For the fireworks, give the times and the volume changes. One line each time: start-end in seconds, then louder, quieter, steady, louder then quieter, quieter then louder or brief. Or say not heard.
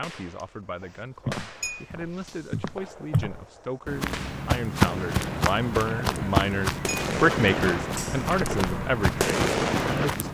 0.0-10.2 louder.